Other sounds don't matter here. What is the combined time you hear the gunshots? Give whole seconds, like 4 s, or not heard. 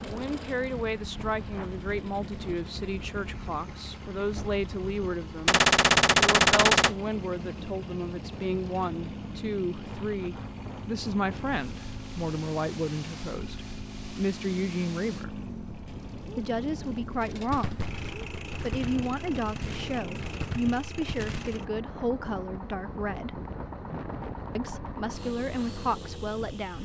6 s.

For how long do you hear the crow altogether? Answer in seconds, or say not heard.
not heard.